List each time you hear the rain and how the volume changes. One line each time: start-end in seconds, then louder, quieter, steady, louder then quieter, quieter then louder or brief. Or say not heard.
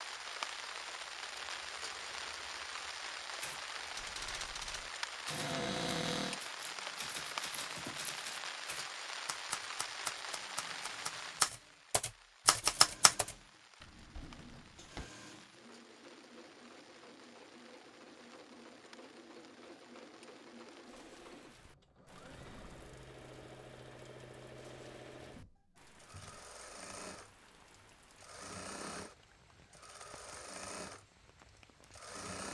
0.0-32.2 quieter.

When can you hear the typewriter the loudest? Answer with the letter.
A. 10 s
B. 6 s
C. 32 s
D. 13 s
D.